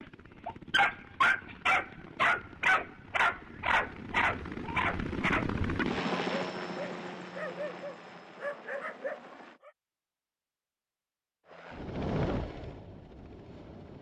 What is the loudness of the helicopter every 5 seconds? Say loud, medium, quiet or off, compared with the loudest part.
medium, loud, loud.